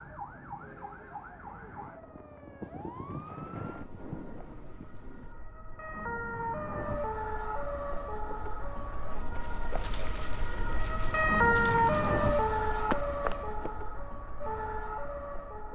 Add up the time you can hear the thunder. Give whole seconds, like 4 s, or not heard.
3 s.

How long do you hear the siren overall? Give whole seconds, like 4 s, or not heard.
16 s.